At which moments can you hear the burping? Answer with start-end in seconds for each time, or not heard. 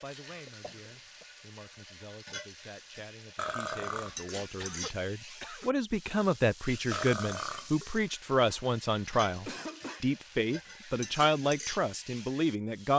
3.4-4.4, 6.9-8.6.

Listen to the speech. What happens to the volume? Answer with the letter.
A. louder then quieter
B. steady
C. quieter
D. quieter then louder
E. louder
E.